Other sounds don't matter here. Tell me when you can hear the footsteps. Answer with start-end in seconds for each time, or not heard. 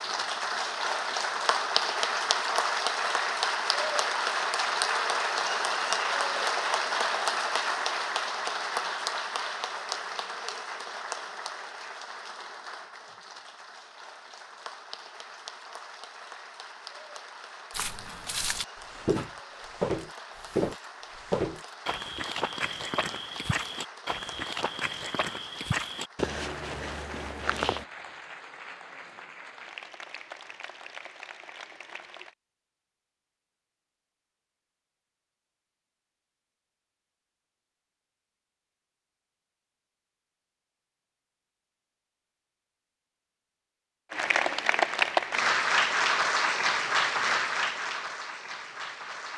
17.7-27.9.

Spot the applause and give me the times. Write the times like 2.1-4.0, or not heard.
0.0-32.4, 44.1-49.3.